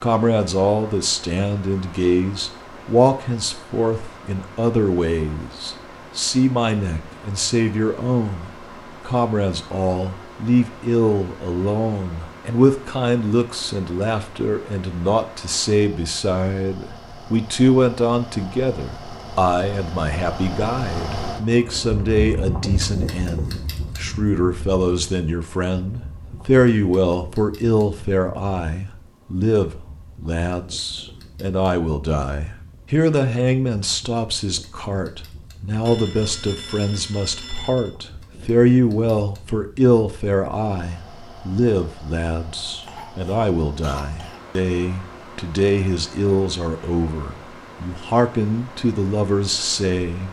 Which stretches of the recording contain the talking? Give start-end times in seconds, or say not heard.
0.0-50.2.